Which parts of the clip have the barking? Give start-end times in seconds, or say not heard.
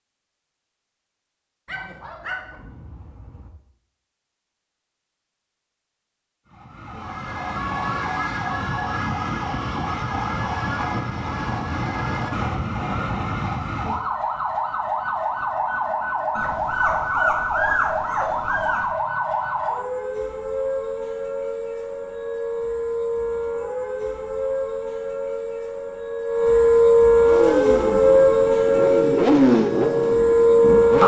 1.6-3.5, 16.4-18.9.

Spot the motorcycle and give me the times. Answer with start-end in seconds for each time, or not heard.
27.2-31.0.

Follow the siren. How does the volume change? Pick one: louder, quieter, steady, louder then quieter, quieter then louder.
louder.